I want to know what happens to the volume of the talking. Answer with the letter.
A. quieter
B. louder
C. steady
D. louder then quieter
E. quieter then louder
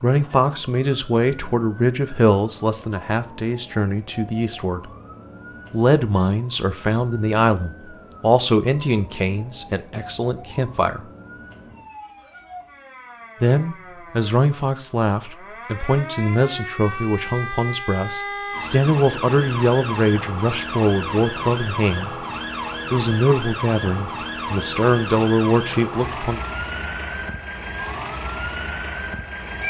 C.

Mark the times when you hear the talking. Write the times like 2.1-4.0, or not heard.
0.0-4.9, 5.7-11.0, 13.4-22.1, 22.9-26.4.